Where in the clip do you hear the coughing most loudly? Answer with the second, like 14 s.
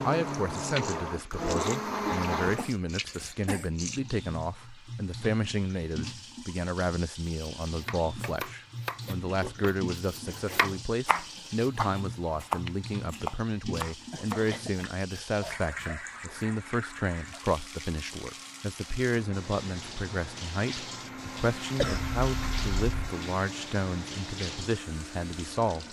22 s.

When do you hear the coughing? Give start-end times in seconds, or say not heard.
2.0-3.7, 13.9-14.8, 21.8-23.1.